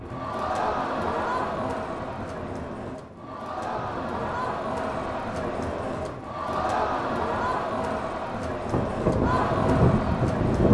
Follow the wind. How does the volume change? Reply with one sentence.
The loudness of the wind goes up.